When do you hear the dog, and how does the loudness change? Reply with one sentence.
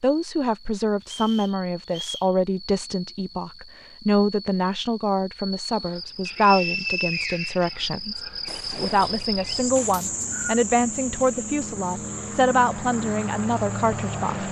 The dog can't be heard in this clip.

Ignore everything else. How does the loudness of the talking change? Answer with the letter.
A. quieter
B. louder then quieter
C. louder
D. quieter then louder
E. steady
E.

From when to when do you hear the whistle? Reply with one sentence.
You can hear the whistle from 1.0 to 2.4 s, from 6.2 to 7.8 s and from 9.9 to 10.6 s.